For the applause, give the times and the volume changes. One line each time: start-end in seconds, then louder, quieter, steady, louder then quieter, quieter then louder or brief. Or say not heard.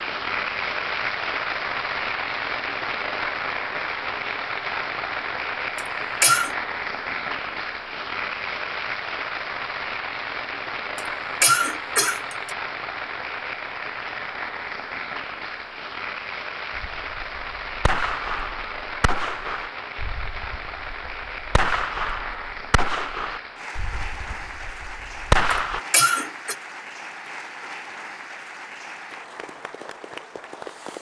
0.0-30.9 quieter.